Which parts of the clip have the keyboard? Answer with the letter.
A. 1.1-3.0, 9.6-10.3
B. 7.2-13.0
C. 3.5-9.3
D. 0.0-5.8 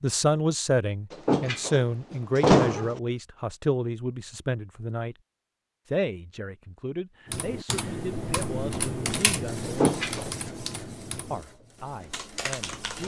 B.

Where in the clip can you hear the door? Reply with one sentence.
You can hear the door from 1.1 to 3.0 s and from 9.6 to 10.3 s.